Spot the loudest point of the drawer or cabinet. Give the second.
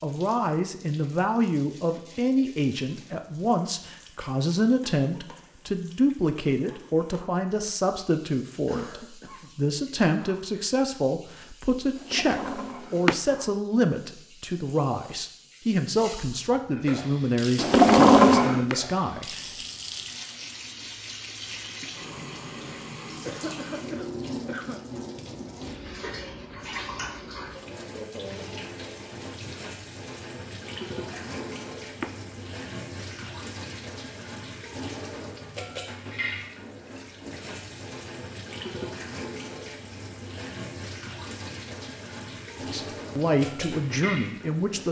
18 s.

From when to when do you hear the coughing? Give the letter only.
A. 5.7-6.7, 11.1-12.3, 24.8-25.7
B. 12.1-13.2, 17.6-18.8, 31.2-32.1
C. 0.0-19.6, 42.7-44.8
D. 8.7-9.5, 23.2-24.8
D.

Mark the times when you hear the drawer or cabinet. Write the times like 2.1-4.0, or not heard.
12.1-13.2, 17.6-18.8, 31.2-32.1.